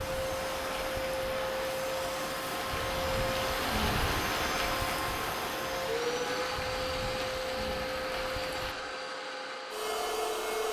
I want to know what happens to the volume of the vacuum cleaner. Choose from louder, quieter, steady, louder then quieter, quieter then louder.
steady.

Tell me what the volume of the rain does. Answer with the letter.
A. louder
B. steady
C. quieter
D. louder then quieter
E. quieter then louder
D.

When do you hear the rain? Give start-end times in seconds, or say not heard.
0.0-8.8.